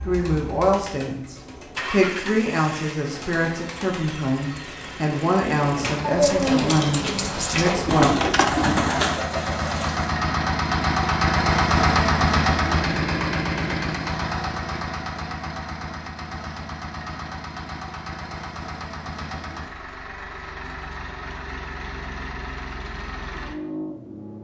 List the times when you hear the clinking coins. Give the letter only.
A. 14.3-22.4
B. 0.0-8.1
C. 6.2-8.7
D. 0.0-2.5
C.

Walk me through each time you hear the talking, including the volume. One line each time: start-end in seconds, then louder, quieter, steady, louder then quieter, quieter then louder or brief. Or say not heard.
0.0-8.1 steady.